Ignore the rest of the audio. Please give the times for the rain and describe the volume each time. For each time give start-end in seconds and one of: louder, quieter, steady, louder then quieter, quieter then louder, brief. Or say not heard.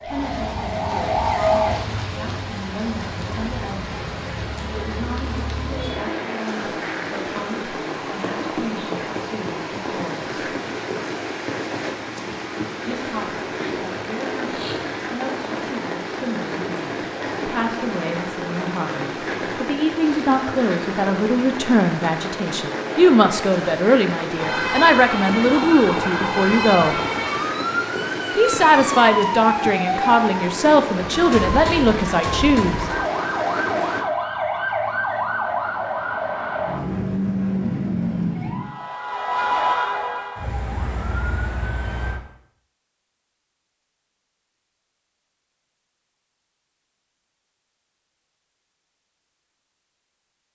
0.0-34.0 steady.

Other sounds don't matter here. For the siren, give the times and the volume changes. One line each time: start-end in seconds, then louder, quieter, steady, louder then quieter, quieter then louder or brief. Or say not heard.
0.0-1.8 brief
24.4-42.2 steady.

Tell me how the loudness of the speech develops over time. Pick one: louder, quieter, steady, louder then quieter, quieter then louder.
louder.